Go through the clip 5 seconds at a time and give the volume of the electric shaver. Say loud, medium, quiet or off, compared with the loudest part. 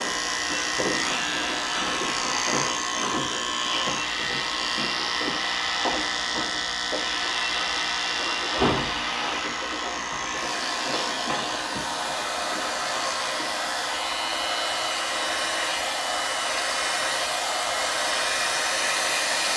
loud, loud, medium, medium.